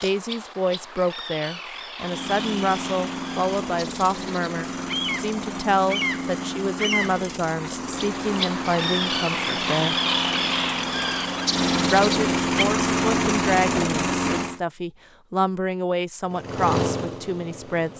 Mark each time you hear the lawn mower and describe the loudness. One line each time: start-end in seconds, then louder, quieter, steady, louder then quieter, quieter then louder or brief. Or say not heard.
2.0-14.6 louder
16.2-17.9 brief.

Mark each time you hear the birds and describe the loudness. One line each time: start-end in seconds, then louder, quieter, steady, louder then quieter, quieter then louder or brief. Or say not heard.
0.0-12.7 louder.